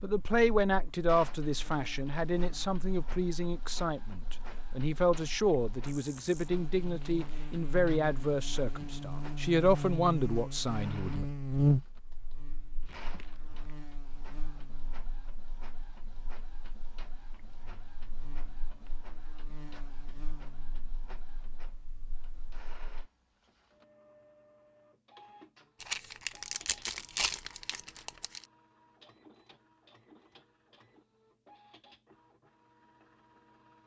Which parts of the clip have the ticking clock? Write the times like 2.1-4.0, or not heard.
not heard.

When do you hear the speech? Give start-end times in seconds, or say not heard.
0.0-11.2.